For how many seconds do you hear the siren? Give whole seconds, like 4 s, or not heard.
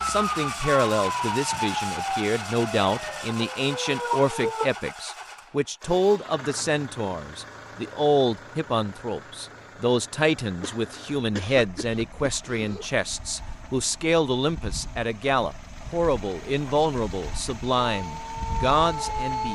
6 s.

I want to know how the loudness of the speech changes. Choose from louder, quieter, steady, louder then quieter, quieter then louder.
steady.